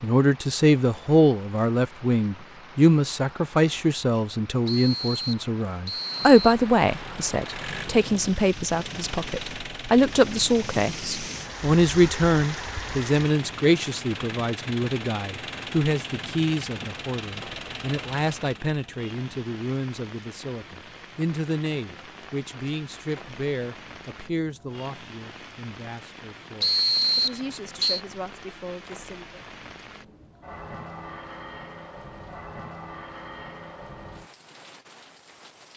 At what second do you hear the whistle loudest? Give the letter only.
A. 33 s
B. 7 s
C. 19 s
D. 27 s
D.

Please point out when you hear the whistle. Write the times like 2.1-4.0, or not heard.
4.7-6.7, 26.6-28.0.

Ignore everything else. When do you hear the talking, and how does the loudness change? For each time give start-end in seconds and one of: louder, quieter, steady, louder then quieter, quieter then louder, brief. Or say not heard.
0.0-29.4 quieter.